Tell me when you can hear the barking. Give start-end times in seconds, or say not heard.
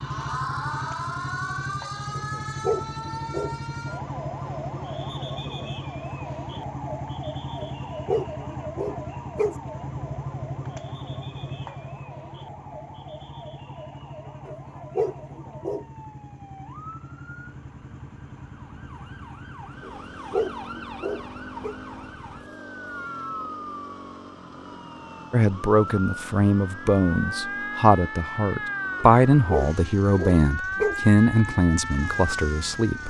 2.1-3.5, 7.5-9.6, 14.4-15.8, 19.8-21.8, 29.0-31.0.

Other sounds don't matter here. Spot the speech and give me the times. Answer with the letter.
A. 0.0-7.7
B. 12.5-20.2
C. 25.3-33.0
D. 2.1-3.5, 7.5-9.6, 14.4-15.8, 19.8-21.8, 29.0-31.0
C.